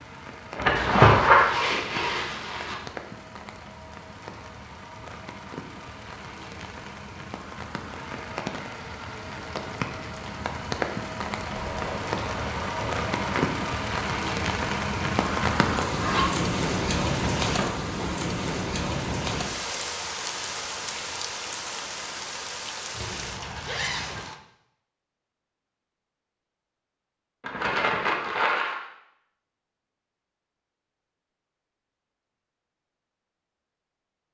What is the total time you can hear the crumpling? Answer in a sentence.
The crumpling can be heard for 4 seconds in total.